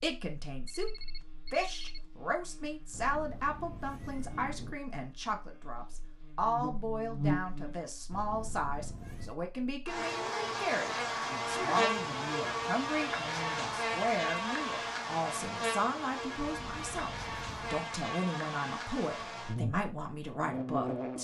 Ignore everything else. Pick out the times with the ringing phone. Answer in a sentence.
You can hear the ringing phone from 0.7 to 2.0 s.